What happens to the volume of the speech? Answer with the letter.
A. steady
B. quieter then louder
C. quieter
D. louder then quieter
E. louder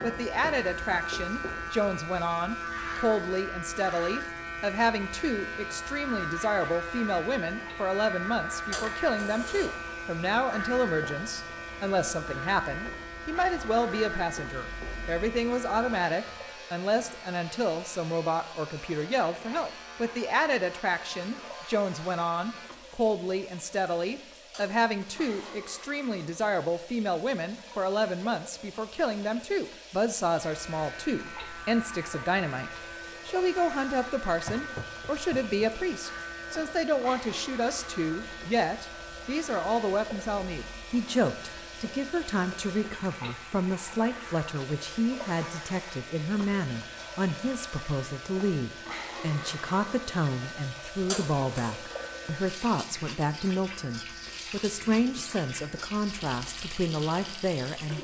A.